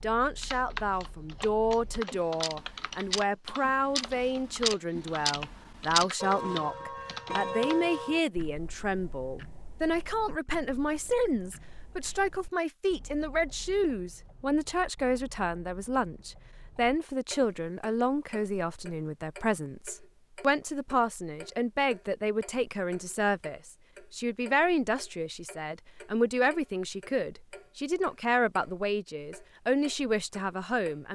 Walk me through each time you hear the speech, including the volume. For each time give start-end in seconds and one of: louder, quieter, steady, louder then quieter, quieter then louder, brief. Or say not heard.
0.0-31.1 steady.